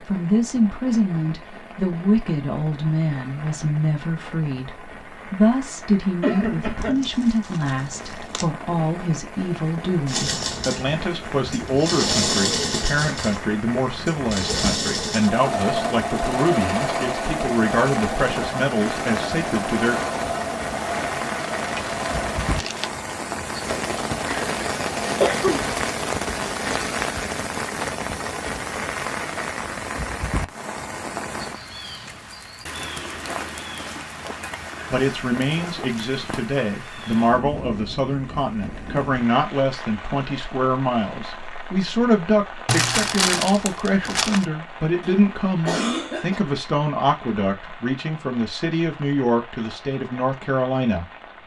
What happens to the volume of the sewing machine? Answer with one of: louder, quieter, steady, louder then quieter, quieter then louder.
quieter.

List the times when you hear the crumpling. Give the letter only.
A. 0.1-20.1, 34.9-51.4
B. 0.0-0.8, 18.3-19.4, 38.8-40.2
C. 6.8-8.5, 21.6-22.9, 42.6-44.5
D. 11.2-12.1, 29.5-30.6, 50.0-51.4
C.